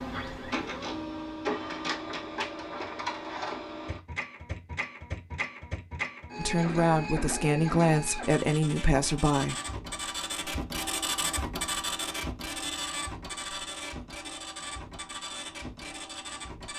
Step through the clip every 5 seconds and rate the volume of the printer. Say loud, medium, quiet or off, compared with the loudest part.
loud, loud, loud, medium.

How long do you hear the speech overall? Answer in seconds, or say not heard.
3 s.